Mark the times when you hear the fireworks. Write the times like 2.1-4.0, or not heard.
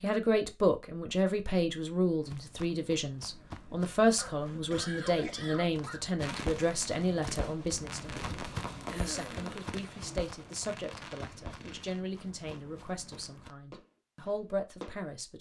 6.2-15.1.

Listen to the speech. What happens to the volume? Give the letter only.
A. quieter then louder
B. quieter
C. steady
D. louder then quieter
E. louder
B.